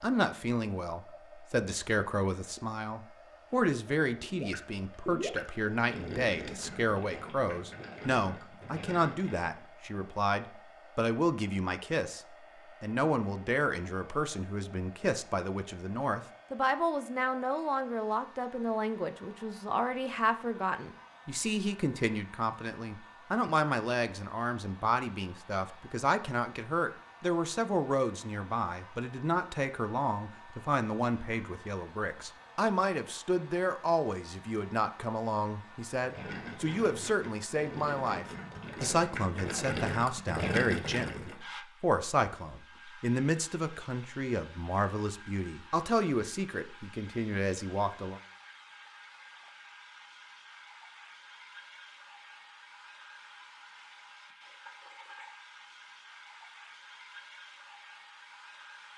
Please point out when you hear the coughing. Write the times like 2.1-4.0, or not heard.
not heard.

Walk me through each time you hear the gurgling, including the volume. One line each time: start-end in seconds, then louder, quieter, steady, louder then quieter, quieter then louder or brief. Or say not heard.
4.2-9.7 quieter
36.0-41.4 louder.